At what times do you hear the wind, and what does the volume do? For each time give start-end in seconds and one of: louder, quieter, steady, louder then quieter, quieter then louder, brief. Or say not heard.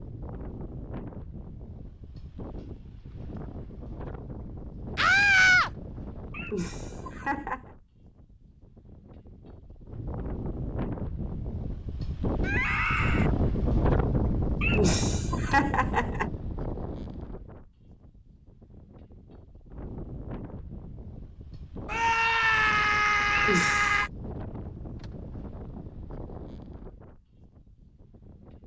0.0-28.6 louder then quieter.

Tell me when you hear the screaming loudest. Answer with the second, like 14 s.
5 s.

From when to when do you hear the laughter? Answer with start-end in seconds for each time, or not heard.
6.3-7.6, 14.6-16.3, 23.3-24.1.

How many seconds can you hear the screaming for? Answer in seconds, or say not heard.
4 s.